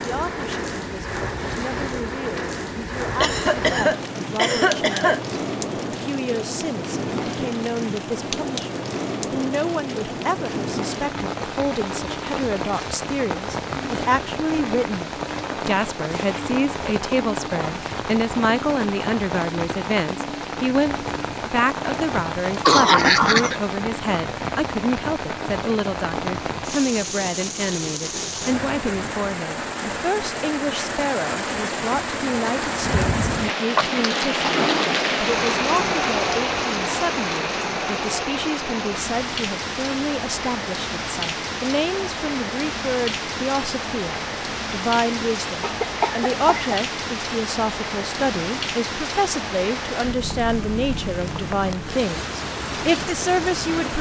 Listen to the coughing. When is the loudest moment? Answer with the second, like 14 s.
23 s.